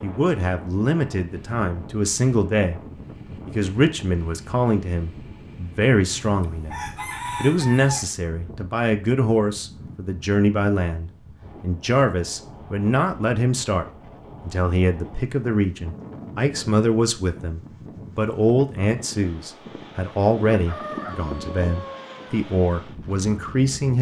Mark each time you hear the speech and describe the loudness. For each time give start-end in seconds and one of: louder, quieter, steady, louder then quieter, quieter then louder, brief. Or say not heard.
0.0-2.8 brief
3.5-23.9 steady.